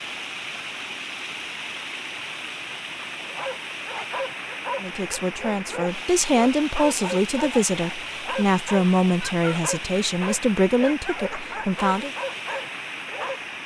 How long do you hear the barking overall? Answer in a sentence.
You can hear the barking for 10 seconds altogether.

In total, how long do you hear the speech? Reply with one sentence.
You can hear the speech for 7 seconds altogether.